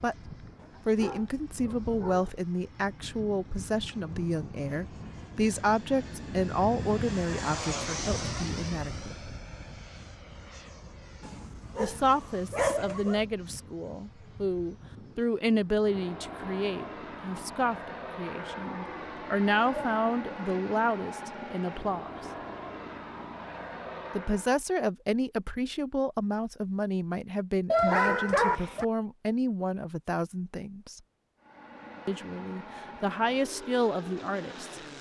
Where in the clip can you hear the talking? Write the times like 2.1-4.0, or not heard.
0.0-9.3, 11.8-22.2, 24.1-31.0, 32.0-34.8.